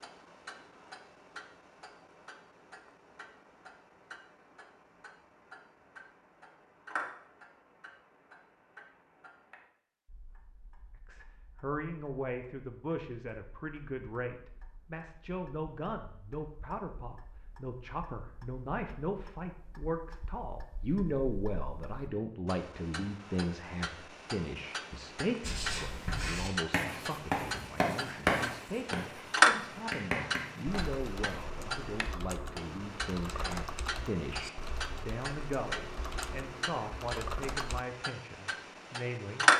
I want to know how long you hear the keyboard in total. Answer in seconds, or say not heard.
7 s.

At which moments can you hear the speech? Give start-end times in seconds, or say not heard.
11.1-39.5.